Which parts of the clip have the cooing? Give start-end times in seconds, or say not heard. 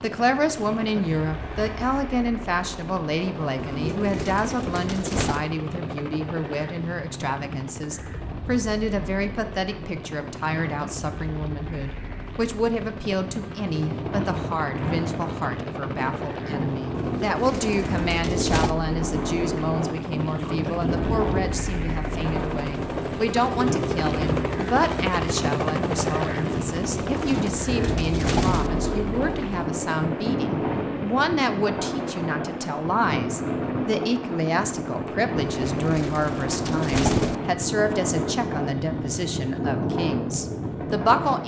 3.5-5.5, 16.9-18.8, 26.8-28.7, 35.6-37.4.